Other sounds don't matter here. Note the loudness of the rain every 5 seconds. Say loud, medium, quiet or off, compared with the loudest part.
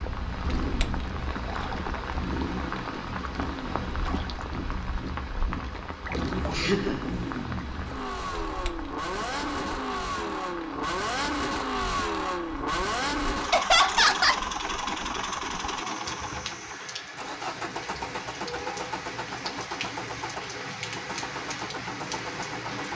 loud, loud, medium, loud, loud.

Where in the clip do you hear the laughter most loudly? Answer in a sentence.
The loudest moment of the laughter is at 14 seconds.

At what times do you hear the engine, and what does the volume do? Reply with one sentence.
The engine can be heard from 0.0 to 22.8 s, getting louder then quieter.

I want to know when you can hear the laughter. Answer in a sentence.
The laughter can be heard from 6.5 to 7.2 s and from 13.5 to 14.4 s.